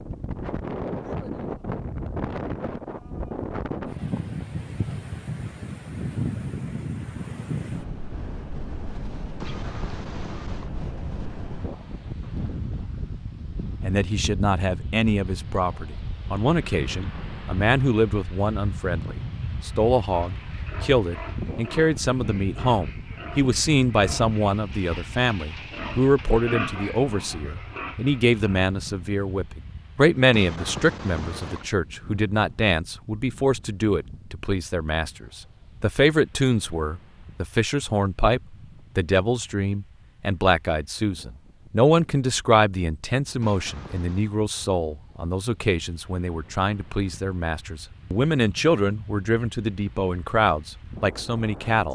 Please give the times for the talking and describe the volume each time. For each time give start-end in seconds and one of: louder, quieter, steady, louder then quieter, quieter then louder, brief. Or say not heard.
13.8-51.9 steady.